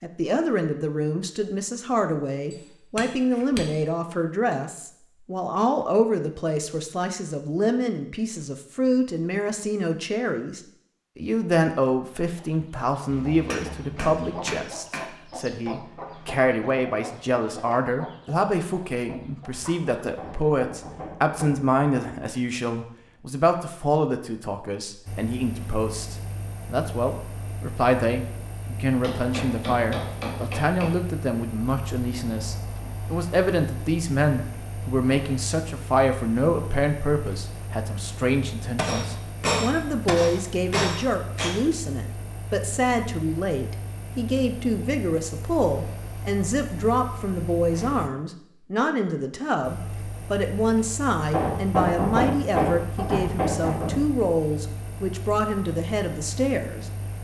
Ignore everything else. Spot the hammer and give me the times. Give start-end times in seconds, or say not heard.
2.5-3.6, 13.1-15.1, 20.1-22.4, 29.0-30.9, 38.8-41.5, 51.3-54.2.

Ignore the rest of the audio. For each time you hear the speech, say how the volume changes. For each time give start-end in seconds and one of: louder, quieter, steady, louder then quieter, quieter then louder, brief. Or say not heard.
0.0-56.9 steady.